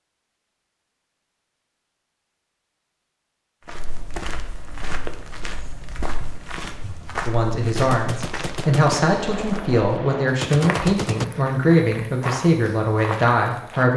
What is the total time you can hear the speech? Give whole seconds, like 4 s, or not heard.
7 s.